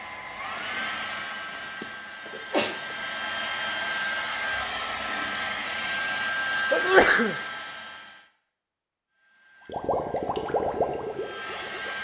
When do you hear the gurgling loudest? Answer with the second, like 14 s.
11 s.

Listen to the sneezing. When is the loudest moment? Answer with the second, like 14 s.
7 s.